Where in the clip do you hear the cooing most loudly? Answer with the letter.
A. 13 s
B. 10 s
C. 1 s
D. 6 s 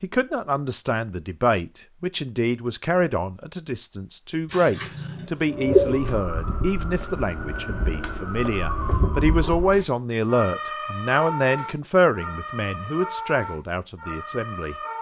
D.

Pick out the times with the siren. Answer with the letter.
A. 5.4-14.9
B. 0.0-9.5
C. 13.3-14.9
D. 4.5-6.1
A.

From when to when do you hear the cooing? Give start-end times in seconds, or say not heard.
4.5-6.1.